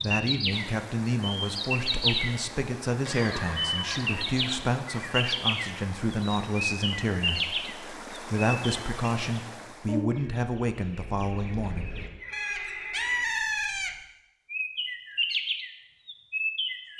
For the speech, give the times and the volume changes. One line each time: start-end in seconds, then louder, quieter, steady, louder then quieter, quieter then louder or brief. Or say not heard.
0.0-11.9 steady.